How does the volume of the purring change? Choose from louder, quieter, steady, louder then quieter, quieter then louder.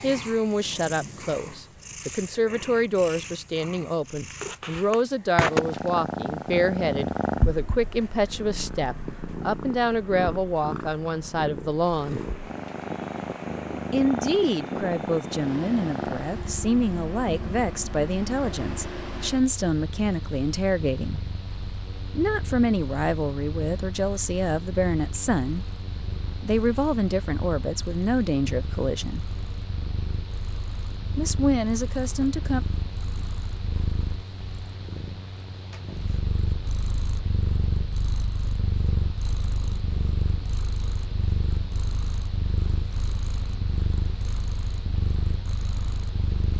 quieter then louder.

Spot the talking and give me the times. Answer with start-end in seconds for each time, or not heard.
0.0-12.2, 13.9-21.2, 22.1-25.6, 26.4-29.2, 31.1-32.6.